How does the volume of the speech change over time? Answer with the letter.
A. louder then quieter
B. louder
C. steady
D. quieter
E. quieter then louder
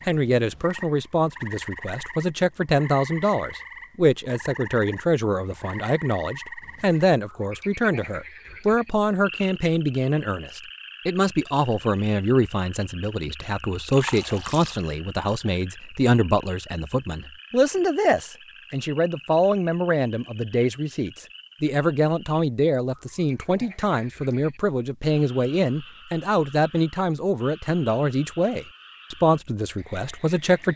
C.